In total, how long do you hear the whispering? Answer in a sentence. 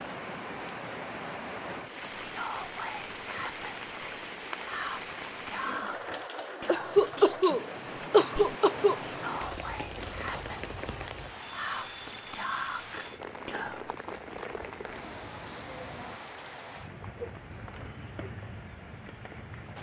The whispering can be heard for 12 seconds in total.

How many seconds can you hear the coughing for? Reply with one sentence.
You can hear the coughing for 2 seconds altogether.